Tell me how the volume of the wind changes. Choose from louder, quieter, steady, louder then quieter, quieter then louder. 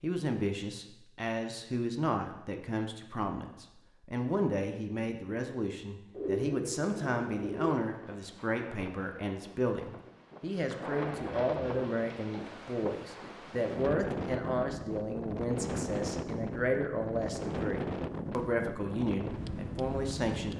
louder.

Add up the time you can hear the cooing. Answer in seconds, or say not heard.
4 s.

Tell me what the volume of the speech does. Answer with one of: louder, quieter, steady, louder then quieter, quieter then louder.
steady.